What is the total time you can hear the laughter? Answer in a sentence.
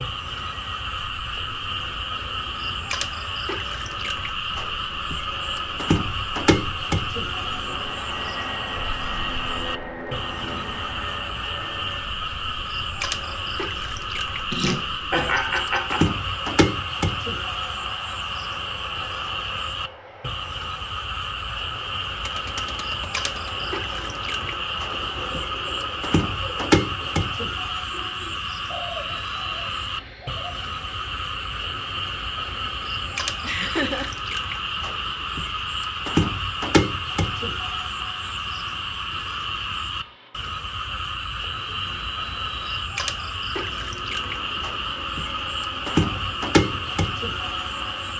You can hear the laughter for 2 seconds altogether.